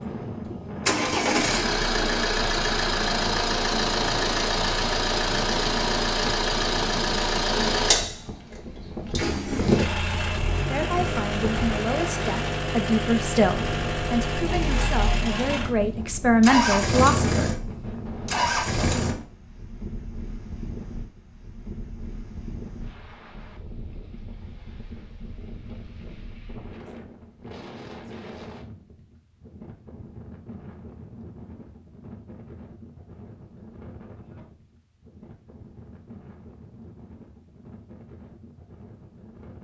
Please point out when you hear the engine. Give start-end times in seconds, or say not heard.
0.0-19.1.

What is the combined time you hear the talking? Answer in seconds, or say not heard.
7 s.